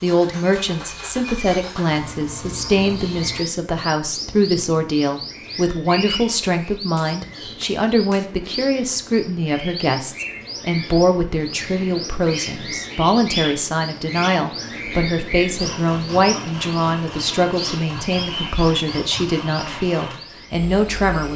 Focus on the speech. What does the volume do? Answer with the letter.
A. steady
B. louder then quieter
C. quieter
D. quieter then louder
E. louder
A.